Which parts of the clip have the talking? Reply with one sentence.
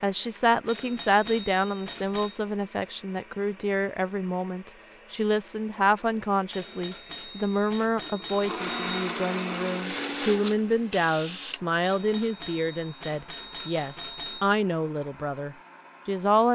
You can hear the talking from 0.0 to 16.5 s.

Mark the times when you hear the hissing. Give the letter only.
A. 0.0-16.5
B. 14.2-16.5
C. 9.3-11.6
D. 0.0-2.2
C.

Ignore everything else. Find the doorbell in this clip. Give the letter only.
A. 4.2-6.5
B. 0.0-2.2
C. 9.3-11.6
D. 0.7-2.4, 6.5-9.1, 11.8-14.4
D.